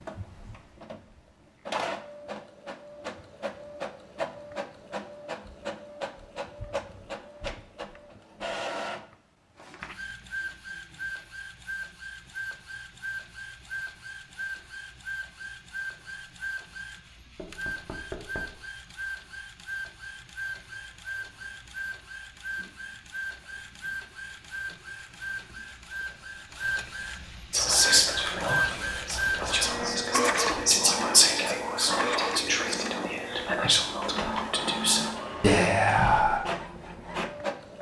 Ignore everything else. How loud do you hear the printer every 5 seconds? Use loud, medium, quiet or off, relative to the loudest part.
medium, medium, medium, medium, medium, loud, loud, loud.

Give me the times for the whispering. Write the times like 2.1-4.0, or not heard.
27.5-36.4.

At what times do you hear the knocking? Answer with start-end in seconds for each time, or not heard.
17.4-18.6.